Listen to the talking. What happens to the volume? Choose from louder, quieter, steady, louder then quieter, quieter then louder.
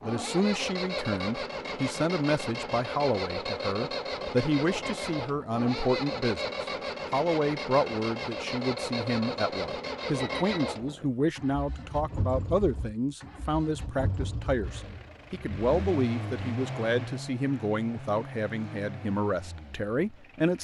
steady.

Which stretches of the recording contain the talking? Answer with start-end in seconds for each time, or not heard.
0.0-20.5.